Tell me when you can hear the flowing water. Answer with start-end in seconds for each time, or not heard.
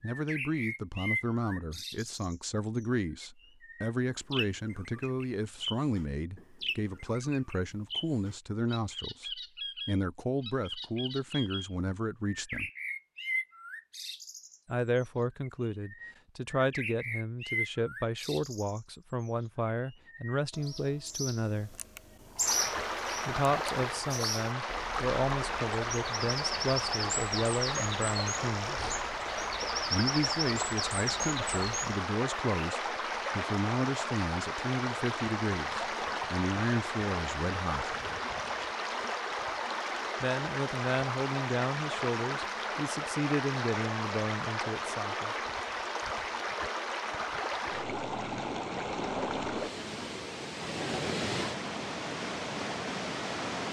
22.4-53.6.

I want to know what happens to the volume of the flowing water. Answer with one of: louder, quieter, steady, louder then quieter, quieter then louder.
steady.